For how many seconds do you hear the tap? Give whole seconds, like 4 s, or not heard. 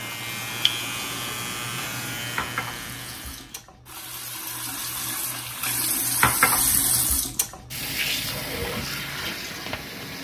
10 s.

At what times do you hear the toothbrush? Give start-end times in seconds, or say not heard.
not heard.